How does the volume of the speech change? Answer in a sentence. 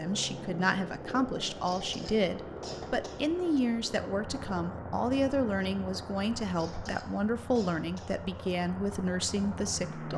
The loudness of the speech stays about the same.